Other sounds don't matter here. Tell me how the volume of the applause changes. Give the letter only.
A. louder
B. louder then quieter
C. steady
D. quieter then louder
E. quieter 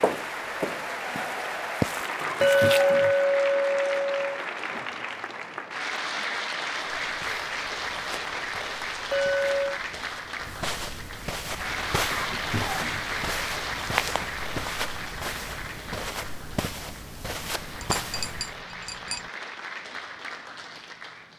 E.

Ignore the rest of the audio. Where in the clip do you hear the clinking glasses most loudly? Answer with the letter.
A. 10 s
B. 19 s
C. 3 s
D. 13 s
C.